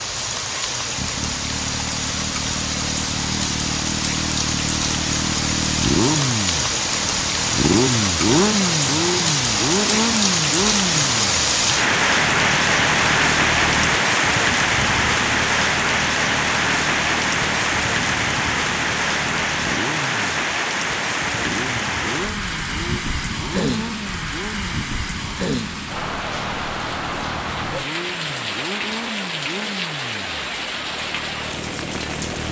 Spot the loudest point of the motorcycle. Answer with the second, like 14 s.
8 s.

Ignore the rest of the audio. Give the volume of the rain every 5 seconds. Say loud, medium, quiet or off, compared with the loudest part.
medium, loud, loud, loud, medium, medium, medium.